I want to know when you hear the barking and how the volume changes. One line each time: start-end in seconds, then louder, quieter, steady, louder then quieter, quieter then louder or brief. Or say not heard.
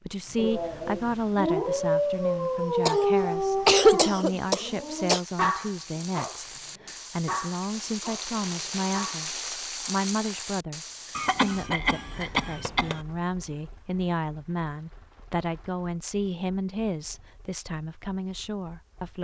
0.3-9.2 quieter.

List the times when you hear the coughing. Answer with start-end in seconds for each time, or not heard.
2.9-5.2, 11.2-13.0.